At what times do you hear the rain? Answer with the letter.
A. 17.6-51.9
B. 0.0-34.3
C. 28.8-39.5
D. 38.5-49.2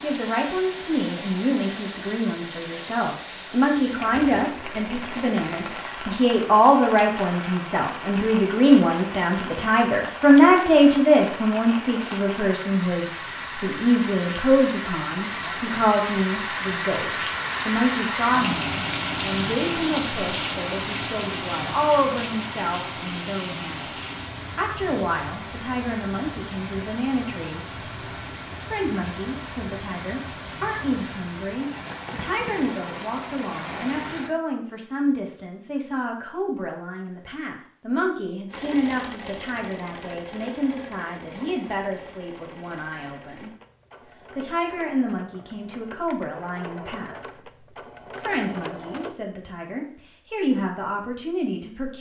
B.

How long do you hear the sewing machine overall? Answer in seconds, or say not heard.
11 s.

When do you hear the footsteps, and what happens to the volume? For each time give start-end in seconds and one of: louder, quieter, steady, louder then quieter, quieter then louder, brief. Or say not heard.
not heard.